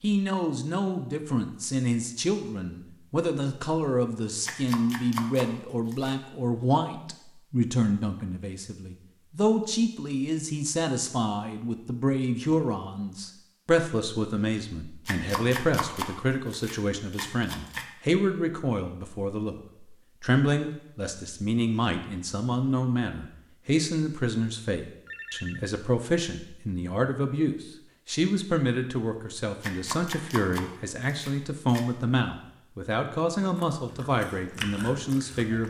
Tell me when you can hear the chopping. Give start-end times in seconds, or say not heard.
4.4-6.2, 15.1-17.9, 29.6-31.9.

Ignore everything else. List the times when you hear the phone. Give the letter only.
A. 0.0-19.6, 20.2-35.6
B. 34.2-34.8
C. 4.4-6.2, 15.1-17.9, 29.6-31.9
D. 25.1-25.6
D.